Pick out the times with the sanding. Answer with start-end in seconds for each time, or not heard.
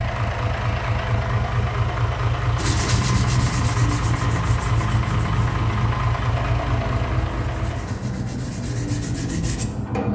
2.5-9.7.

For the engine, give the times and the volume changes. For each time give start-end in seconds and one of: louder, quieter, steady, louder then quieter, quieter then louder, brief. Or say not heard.
0.0-10.1 quieter.